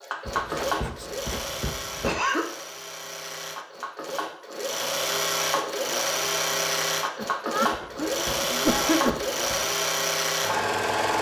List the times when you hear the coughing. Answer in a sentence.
You can hear the coughing from 2.0 to 2.5 s and from 7.2 to 9.2 s.